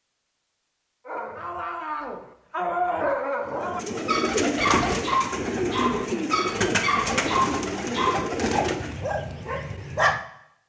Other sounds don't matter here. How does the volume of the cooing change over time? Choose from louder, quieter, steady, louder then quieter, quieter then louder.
steady.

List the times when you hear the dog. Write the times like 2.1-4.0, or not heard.
1.1-10.2.